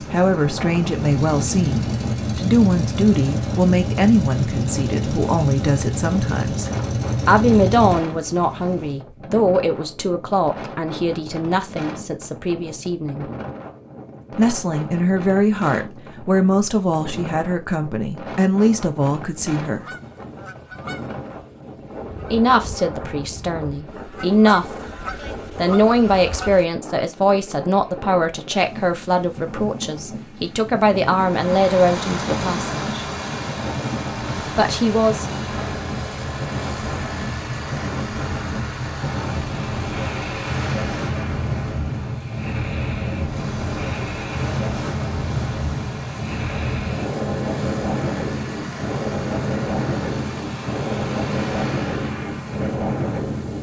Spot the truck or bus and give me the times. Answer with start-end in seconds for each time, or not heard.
0.0-9.0, 31.1-53.5.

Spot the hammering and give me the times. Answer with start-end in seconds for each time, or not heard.
not heard.